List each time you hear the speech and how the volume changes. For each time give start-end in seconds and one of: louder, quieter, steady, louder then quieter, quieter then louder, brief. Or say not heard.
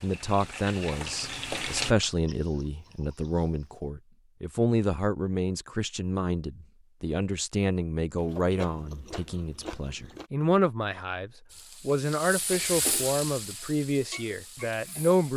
0.0-15.3 steady.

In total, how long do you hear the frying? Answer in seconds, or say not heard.
6 s.